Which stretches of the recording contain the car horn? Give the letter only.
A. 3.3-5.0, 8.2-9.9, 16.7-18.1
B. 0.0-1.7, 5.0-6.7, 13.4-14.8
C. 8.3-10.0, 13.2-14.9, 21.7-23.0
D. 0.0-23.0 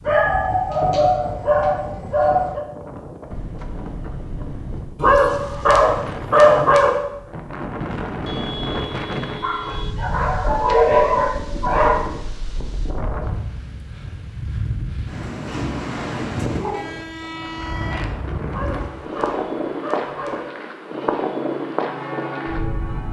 A.